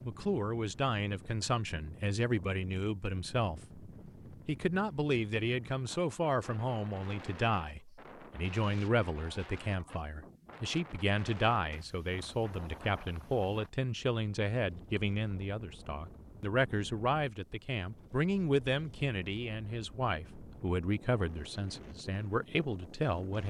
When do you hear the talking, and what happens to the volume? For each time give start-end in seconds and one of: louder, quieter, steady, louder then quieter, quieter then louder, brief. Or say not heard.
0.0-23.4 steady.